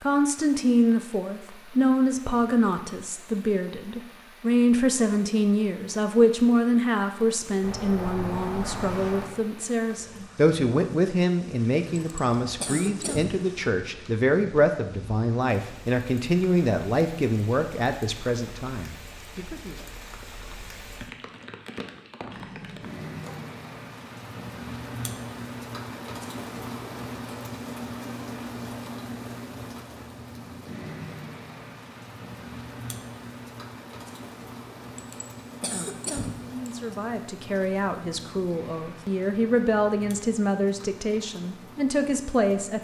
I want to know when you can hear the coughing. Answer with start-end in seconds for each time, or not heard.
11.9-13.3, 35.0-37.0.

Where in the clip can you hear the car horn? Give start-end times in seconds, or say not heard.
7.6-9.3, 22.3-23.4.